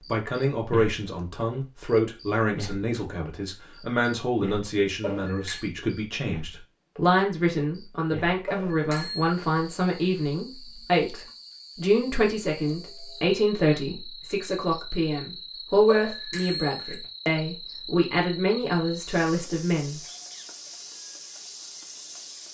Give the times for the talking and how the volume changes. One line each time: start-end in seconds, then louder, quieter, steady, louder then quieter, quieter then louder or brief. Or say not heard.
0.1-20.0 steady.